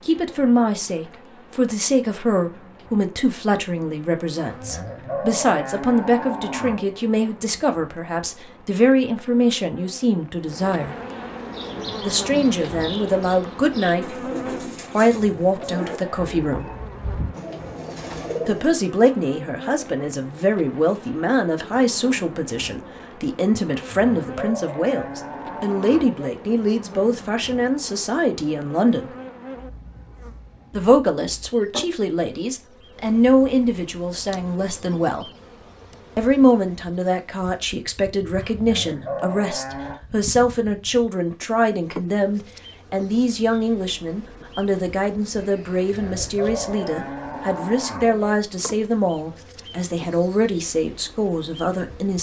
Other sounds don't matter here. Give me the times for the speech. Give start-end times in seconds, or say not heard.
0.1-10.9, 12.0-14.2, 14.9-16.7, 18.4-29.1, 30.7-35.3, 36.1-52.1.